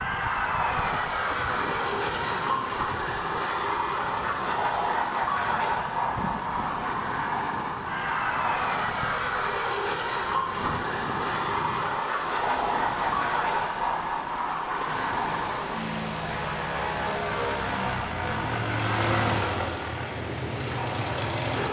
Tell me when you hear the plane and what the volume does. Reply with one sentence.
The plane can be heard from 0.0 to 21.6 s, at a steady volume.